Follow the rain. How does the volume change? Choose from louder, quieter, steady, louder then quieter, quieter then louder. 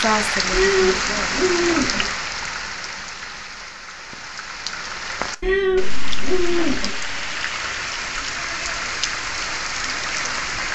quieter then louder.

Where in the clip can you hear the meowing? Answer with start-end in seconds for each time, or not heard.
0.5-2.1, 5.4-7.0.